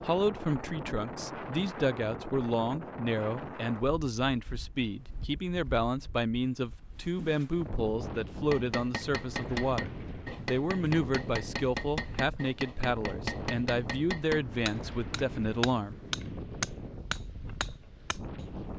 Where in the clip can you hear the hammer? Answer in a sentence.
The hammer can be heard from 8.4 to 18.7 s.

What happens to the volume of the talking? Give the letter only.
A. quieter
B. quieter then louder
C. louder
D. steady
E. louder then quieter
D.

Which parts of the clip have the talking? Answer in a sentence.
The talking can be heard from 0.0 to 15.9 s.